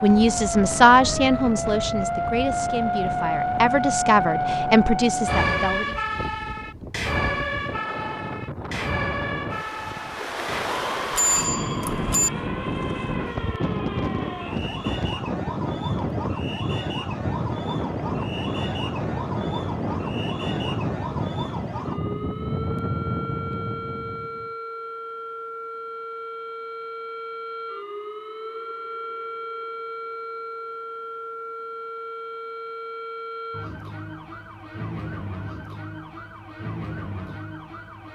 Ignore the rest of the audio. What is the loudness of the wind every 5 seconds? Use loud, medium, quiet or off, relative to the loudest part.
medium, medium, loud, loud, loud, off, off, off.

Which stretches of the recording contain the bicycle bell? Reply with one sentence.
The bicycle bell can be heard from 11.1 to 12.3 s.